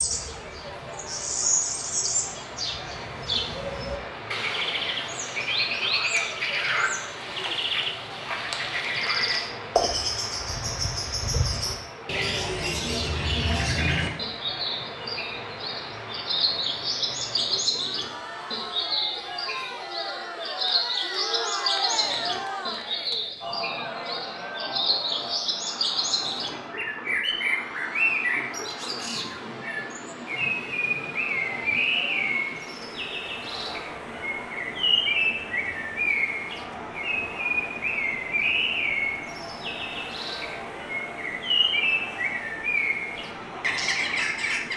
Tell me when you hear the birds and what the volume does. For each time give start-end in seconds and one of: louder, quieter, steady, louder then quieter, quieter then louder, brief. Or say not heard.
0.0-44.7 steady.